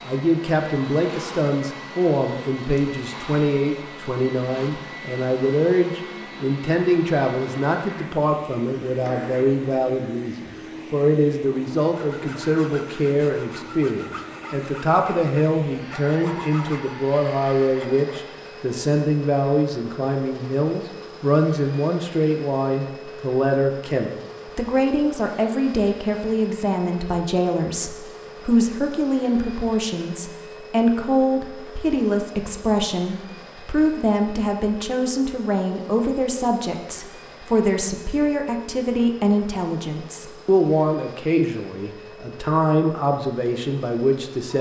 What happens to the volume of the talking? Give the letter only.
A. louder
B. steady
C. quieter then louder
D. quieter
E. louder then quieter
B.